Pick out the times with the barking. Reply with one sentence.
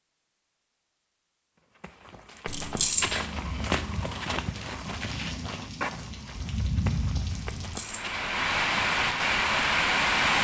The barking can't be heard in this clip.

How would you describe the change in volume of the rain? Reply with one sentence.
The volume of the rain goes up.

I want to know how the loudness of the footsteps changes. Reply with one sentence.
The loudness of the footsteps goes down.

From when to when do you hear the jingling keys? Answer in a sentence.
You can hear the jingling keys from 2.5 to 3.2 s and from 7.6 to 8.2 s.